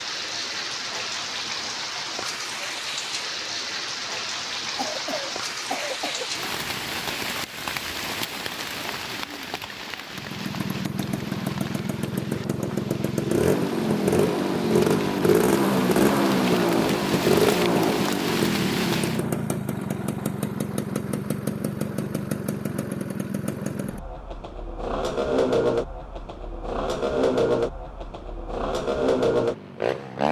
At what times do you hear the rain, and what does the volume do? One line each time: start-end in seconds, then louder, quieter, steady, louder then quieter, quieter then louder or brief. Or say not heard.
0.0-19.2 quieter then louder.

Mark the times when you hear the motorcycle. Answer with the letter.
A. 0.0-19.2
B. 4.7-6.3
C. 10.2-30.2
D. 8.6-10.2
C.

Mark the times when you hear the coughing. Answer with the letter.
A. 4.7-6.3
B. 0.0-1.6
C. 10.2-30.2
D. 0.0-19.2
A.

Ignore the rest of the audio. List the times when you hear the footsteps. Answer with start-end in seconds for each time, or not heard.
not heard.